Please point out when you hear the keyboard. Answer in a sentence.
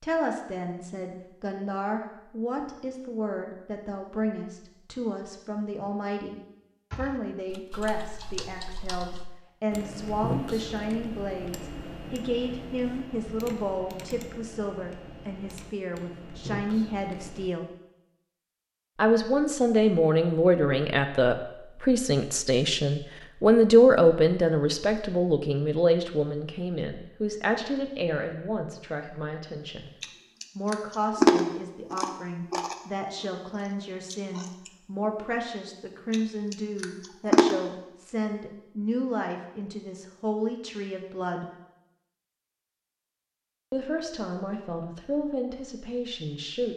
The keyboard can be heard from 6.9 to 17.5 s.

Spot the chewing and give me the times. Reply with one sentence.
The chewing can be heard from 30.0 to 32.8 s, from 34.1 to 34.7 s and from 36.1 to 37.5 s.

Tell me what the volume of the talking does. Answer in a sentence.
The loudness of the talking goes up, then down.